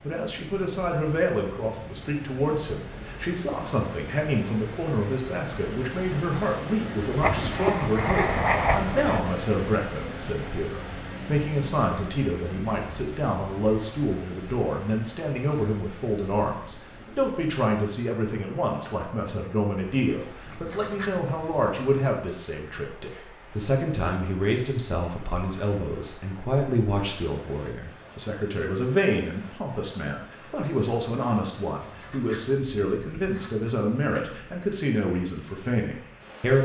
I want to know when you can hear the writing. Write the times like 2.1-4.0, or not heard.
7.2-9.2, 20.4-22.1, 31.8-34.3.